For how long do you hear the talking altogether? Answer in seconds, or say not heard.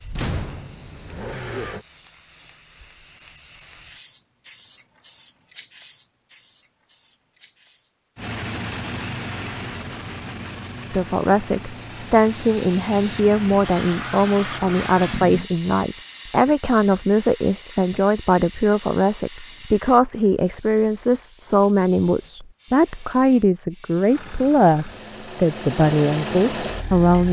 16 s.